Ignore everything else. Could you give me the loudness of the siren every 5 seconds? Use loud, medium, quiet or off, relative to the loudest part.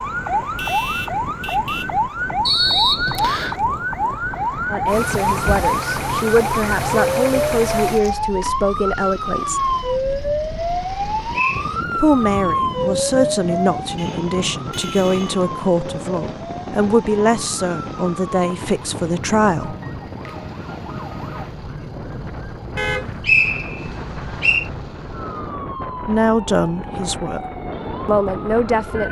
loud, loud, loud, medium, quiet, medium.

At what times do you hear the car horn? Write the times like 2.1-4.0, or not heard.
0.6-1.9, 13.9-15.4, 22.8-23.2.